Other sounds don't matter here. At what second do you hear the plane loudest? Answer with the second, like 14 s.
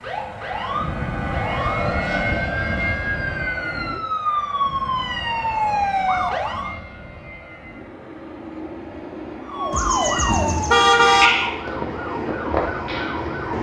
2 s.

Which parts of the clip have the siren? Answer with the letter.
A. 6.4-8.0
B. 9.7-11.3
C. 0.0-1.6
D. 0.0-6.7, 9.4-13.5
D.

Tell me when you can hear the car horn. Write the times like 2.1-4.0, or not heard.
9.7-11.3.